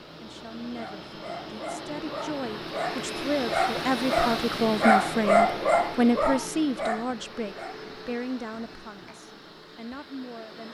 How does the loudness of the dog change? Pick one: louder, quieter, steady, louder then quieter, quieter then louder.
louder then quieter.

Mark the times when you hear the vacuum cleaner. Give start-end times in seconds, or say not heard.
0.0-10.6.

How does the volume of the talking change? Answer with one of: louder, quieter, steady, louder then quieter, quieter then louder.
louder then quieter.